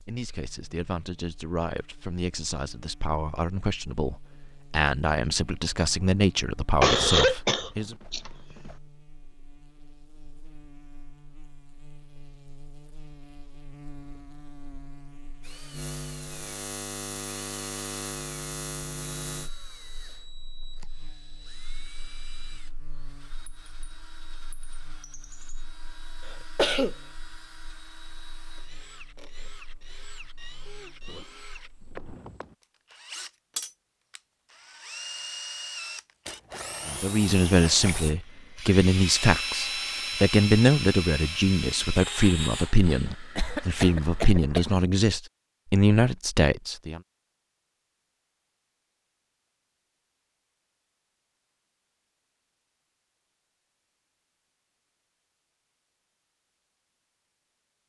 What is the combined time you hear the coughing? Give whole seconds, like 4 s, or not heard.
4 s.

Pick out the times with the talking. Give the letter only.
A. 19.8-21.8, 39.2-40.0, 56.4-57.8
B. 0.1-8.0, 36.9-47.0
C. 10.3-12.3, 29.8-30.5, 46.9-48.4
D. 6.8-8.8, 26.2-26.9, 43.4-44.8
B.